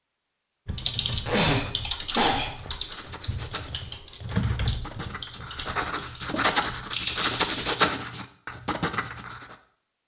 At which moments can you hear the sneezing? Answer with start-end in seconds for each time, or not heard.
0.7-2.5, 6.9-7.5.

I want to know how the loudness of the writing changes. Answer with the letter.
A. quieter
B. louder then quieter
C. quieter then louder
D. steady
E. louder
E.